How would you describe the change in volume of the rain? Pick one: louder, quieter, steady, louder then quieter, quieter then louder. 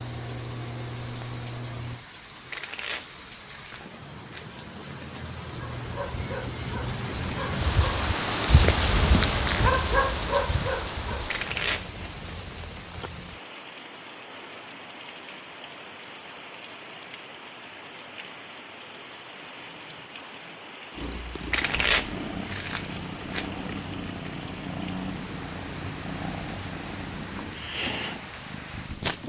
louder then quieter.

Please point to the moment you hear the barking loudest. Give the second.
10 s.